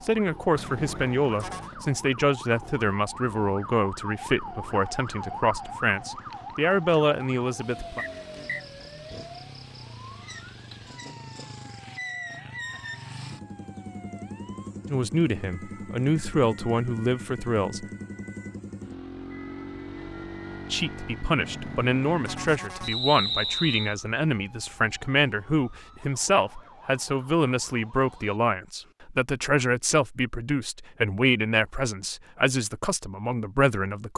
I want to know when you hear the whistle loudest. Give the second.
23 s.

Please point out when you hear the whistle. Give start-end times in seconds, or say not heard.
8.0-8.4, 22.8-23.9.